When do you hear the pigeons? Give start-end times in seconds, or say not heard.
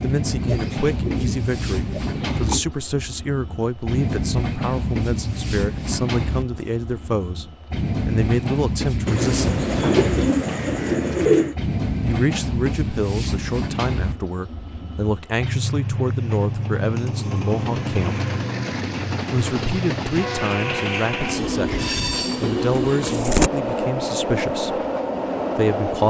0.4-2.6, 9.1-11.6, 22.4-23.5.